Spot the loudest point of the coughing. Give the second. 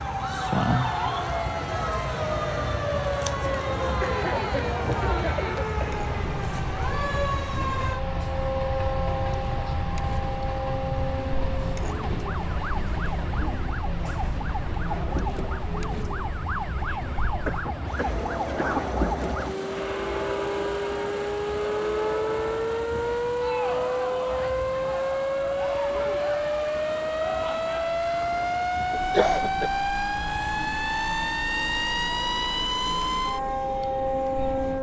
29 s.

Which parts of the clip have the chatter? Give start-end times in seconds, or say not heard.
0.2-34.7.